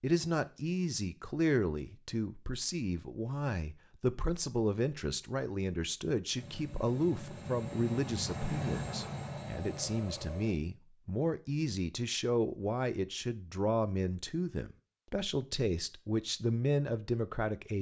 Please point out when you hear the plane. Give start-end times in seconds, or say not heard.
6.3-10.6.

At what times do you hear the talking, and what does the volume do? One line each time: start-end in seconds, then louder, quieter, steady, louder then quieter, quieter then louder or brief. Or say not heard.
0.0-17.7 steady.